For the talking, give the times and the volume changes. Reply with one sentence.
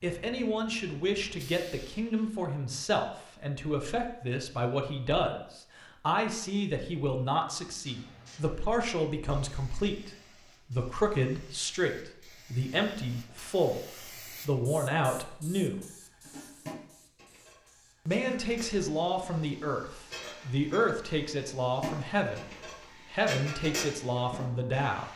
The talking can be heard from 0.0 to 15.8 s, at a steady volume; and from 18.1 to 25.1 s, at a steady volume.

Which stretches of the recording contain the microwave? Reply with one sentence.
You can't hear the microwave here.